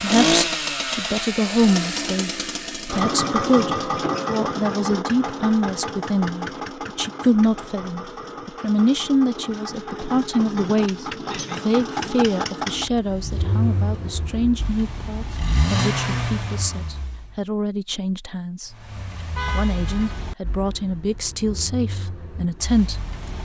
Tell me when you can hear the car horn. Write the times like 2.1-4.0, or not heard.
19.4-20.2.